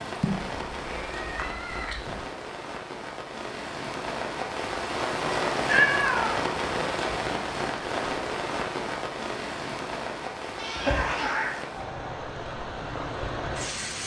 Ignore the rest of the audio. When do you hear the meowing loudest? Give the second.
6 s.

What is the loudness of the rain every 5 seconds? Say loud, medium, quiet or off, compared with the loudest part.
medium, loud, medium.